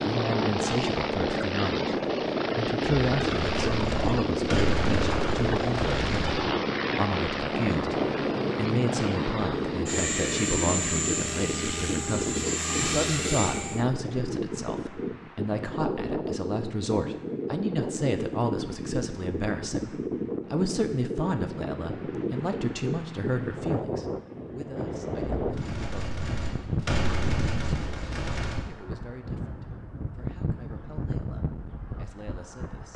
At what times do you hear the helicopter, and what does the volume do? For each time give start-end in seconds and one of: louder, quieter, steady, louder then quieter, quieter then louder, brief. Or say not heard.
0.0-14.0 steady.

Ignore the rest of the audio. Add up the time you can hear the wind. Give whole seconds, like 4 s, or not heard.
33 s.